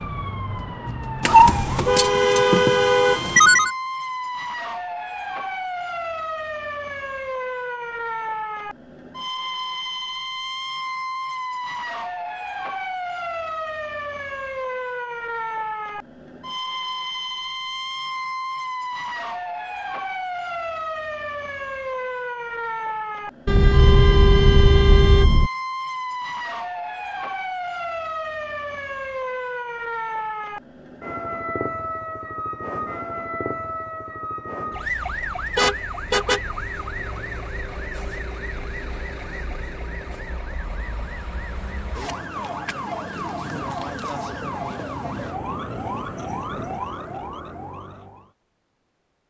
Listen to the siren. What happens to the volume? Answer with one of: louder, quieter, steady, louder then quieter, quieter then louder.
steady.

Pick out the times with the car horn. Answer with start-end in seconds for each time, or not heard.
1.2-3.7, 23.4-25.5, 35.5-36.4.